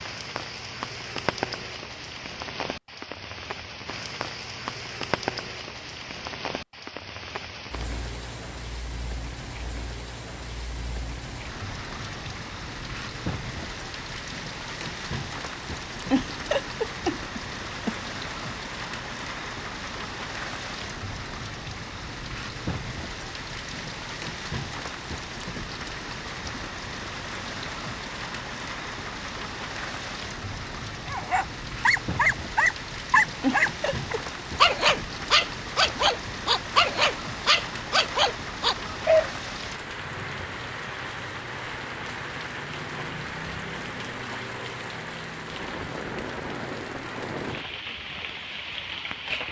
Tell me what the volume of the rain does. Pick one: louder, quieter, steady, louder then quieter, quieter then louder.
steady.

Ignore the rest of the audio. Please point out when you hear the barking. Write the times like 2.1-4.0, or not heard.
31.1-39.3.